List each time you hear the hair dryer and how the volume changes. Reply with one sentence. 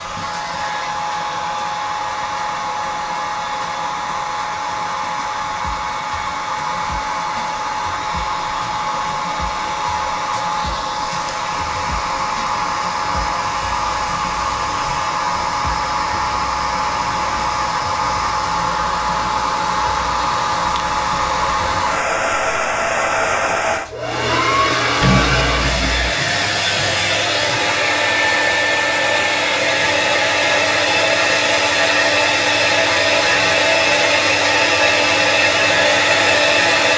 You can hear the hair dryer from 0.0 to 36.9 s, getting louder.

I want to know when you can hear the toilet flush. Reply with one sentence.
You can hear the toilet flush from 25.0 to 26.1 s.